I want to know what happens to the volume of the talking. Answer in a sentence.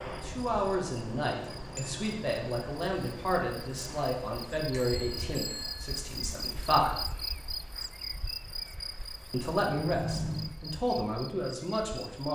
The volume of the talking stays about the same.